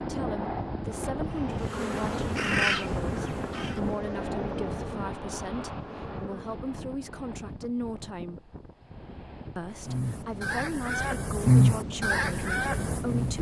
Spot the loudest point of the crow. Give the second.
12 s.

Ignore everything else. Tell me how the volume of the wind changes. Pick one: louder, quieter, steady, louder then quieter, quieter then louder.
quieter then louder.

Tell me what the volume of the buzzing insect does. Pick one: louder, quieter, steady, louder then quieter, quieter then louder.
quieter.